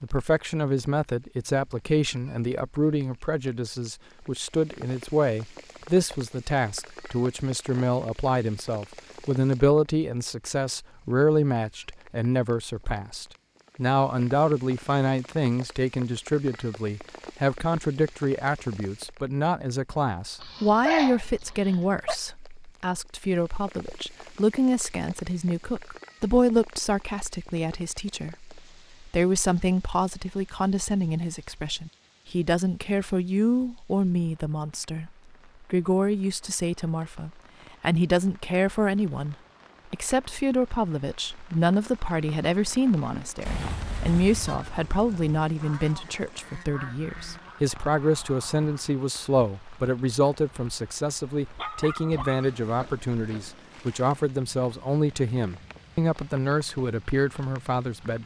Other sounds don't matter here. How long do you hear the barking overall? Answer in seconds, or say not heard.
4 s.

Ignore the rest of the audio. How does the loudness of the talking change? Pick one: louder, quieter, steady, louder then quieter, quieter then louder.
steady.